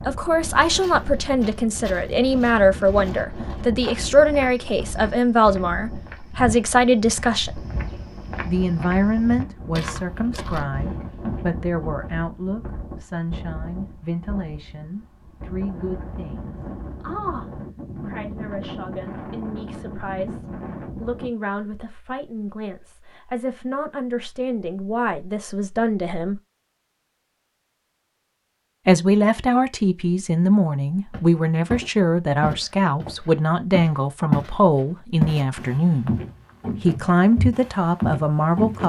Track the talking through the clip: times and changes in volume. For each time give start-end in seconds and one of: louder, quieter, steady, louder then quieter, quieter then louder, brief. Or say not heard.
0.1-7.6 steady
8.4-26.4 quieter then louder
28.9-36.1 steady
36.8-38.8 brief.